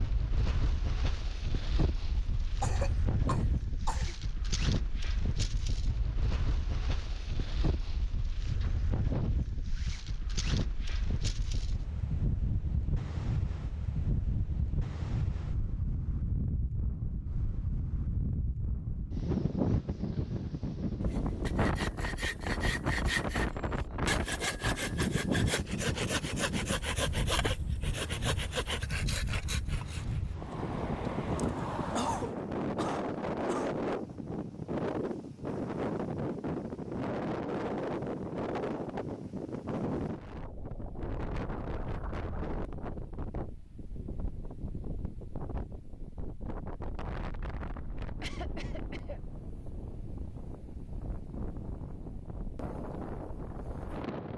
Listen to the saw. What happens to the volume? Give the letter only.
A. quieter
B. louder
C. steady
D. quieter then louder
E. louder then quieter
C.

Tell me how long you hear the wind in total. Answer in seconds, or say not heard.
54 s.